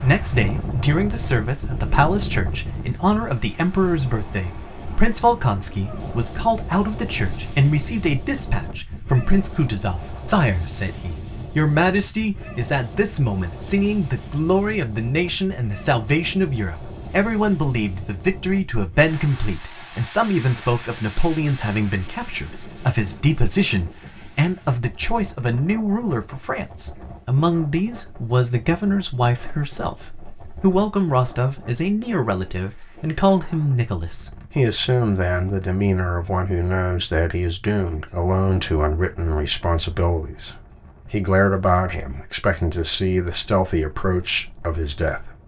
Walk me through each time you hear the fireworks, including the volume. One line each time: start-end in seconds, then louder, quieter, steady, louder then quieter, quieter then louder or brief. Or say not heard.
not heard.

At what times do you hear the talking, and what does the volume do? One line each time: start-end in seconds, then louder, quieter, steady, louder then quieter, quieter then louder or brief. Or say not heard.
0.0-45.3 steady.